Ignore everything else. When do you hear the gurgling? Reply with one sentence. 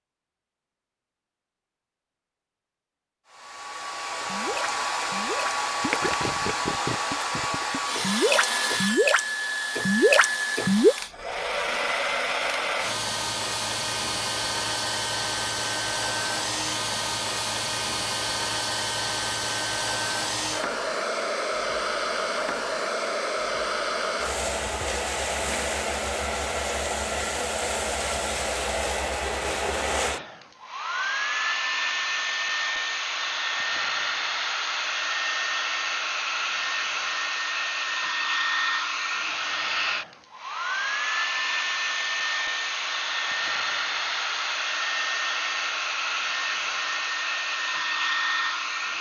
You can hear the gurgling from 4.2 to 10.9 s.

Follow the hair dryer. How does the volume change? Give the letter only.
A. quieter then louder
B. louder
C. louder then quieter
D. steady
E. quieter
D.